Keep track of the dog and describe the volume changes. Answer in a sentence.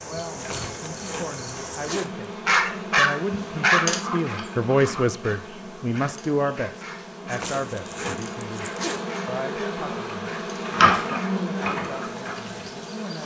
The volume of the dog goes down.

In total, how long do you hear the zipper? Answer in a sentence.
The zipper can be heard for 4 seconds in total.